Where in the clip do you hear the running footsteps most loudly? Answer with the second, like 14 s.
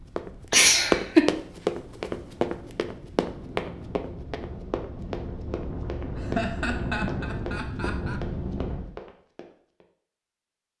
1 s.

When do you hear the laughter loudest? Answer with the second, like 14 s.
1 s.